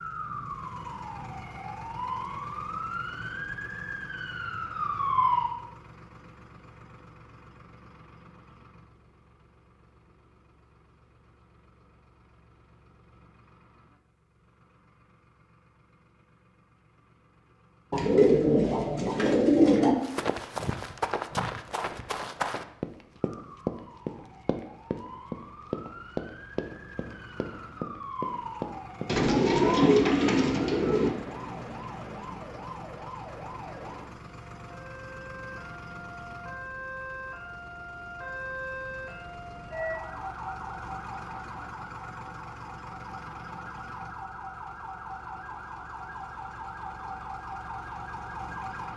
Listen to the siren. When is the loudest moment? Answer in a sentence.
The loudest moment of the siren is at 5 seconds.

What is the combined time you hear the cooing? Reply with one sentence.
You can hear the cooing for 4 seconds altogether.